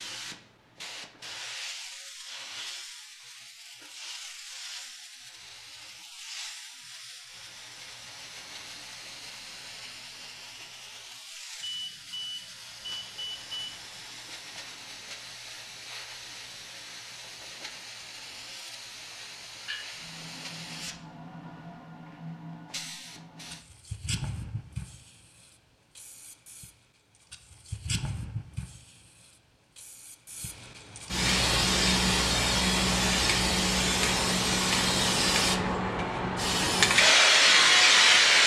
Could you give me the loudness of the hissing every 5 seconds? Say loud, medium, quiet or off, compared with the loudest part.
quiet, quiet, quiet, quiet, quiet, quiet, medium, loud.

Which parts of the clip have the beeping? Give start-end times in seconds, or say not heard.
11.6-13.7.